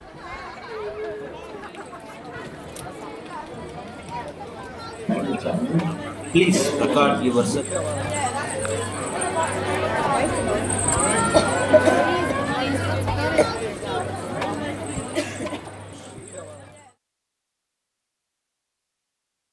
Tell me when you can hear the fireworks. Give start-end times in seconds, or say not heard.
not heard.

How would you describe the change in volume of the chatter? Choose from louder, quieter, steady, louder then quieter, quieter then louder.
louder then quieter.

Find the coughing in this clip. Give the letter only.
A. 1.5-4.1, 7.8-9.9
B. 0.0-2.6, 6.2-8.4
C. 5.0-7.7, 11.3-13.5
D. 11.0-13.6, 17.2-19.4
C.